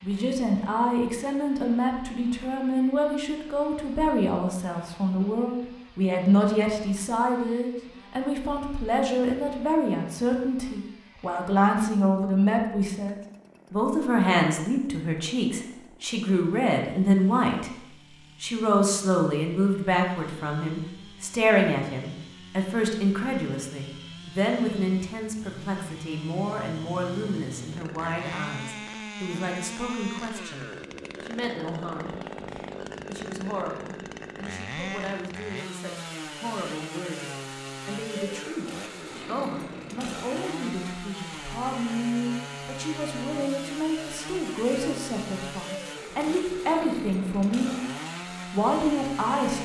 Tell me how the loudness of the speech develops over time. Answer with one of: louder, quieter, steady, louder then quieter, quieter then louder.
quieter then louder.